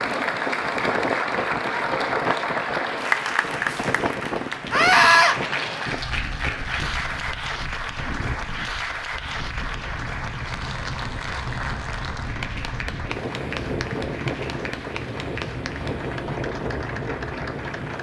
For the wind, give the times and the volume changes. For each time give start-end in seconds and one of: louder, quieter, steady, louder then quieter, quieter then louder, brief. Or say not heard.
0.0-17.9 quieter then louder.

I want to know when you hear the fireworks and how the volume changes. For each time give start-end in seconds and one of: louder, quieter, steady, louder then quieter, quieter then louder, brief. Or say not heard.
not heard.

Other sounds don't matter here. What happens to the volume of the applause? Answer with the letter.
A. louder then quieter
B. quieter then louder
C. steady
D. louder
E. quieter
E.